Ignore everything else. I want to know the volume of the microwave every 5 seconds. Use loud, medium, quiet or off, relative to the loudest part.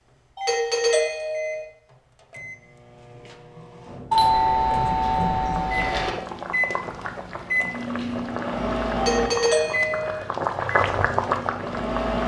quiet, loud, loud.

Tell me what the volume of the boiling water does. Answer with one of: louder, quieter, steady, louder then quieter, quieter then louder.
louder.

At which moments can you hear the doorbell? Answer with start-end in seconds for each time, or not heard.
0.3-1.6, 4.1-6.1, 8.9-10.2.